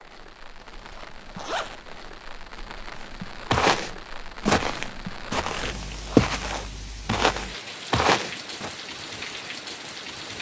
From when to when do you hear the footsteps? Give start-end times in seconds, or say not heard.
3.5-8.7.